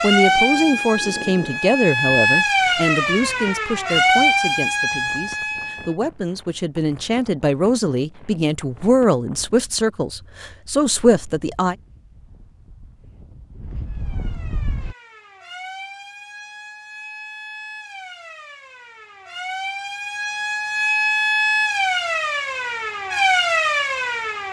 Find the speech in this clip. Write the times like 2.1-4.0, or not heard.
0.0-11.8.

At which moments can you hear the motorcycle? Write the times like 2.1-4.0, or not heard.
not heard.